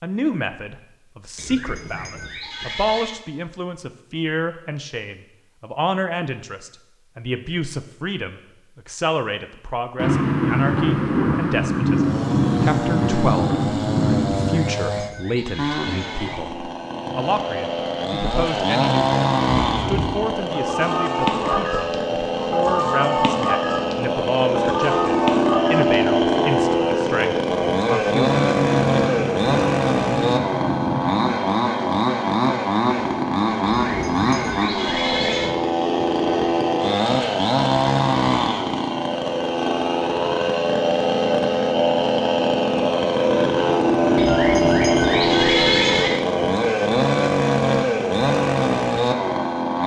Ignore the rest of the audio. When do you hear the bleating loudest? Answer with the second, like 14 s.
46 s.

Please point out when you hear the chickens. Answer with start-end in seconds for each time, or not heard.
19.6-25.9.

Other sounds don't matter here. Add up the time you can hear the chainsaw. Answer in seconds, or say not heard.
38 s.